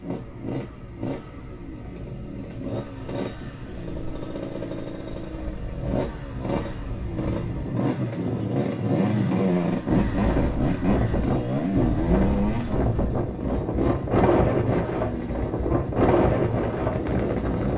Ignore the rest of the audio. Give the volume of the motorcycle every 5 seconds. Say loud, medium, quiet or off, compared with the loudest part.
medium, loud, loud, medium.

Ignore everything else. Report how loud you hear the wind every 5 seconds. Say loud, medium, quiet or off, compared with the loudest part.
quiet, medium, loud, loud.